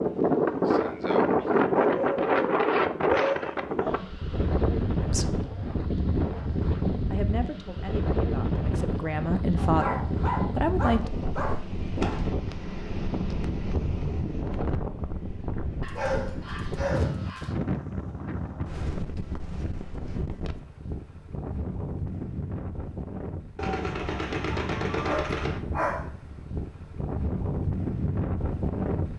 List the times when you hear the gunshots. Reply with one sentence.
The gunshots can be heard from 12.0 to 12.4 s and from 23.6 to 25.6 s.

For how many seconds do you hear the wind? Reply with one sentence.
You can hear the wind for 29 seconds altogether.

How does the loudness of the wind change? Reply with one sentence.
The loudness of the wind goes down.